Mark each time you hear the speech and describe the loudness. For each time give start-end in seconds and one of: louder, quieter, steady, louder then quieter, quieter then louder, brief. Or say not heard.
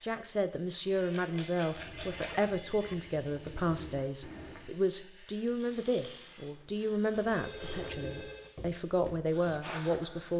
0.0-10.3 steady.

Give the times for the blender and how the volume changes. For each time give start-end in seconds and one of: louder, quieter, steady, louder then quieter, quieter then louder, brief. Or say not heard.
not heard.